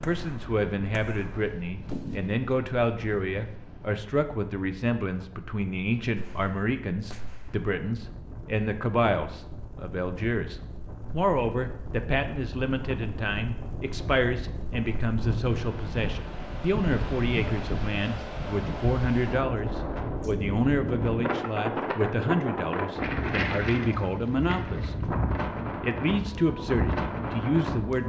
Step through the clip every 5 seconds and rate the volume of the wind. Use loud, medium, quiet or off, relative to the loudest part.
quiet, quiet, medium, loud, loud, loud.